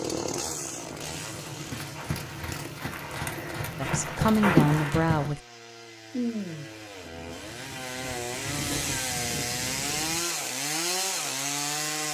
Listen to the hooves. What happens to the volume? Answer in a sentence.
The volume of the hooves goes up.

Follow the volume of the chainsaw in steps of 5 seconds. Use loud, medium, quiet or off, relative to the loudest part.
medium, medium, loud.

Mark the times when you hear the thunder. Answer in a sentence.
You can hear the thunder from 6.1 to 10.2 s.